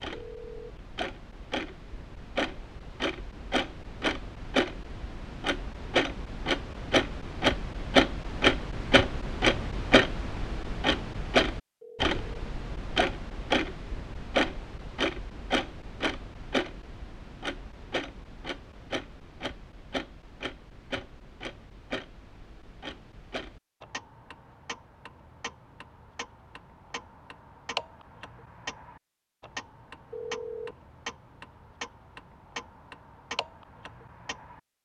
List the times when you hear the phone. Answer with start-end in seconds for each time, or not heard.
0.1-0.8, 11.8-12.9, 30.1-30.8.